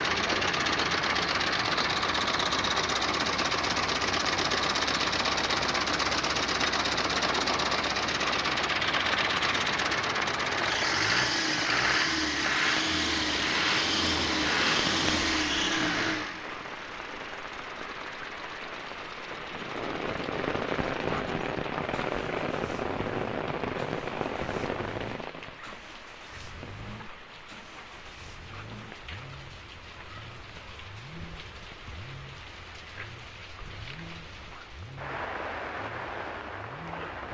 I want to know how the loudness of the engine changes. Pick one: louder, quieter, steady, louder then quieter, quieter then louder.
quieter.